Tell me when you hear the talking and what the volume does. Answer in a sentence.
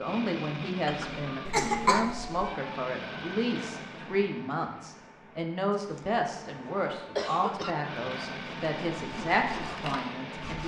The talking can be heard from 0.0 to 10.6 s, at a steady volume.